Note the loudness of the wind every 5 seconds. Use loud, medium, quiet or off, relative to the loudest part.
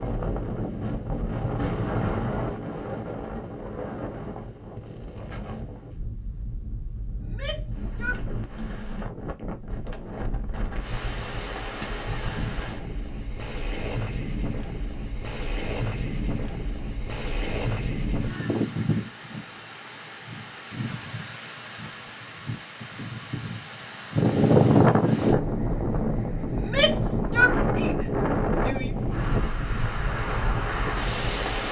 medium, quiet, medium, medium, loud, loud, loud.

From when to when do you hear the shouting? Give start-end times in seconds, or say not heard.
7.2-8.2, 26.6-28.9.